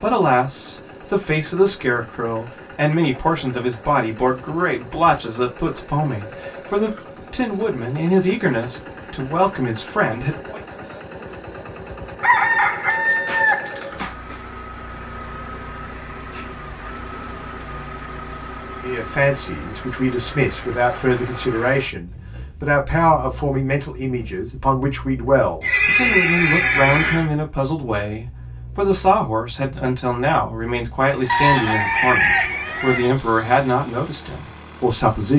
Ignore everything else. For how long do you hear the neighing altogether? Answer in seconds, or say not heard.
2 s.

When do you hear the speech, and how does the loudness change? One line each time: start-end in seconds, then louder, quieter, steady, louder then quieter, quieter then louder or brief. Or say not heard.
0.0-10.6 steady
18.8-35.3 steady.